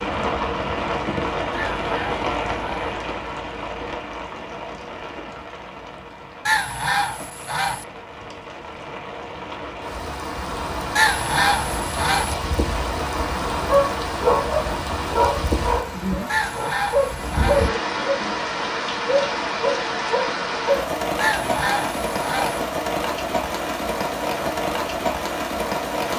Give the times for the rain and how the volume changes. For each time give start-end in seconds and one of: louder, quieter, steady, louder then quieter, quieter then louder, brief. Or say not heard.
0.0-26.1 quieter then louder.